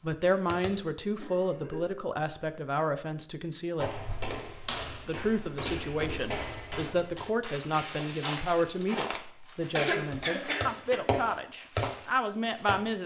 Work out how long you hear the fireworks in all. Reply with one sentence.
You can hear the fireworks for 4 seconds altogether.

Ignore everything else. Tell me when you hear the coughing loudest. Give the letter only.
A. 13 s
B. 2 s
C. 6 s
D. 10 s
D.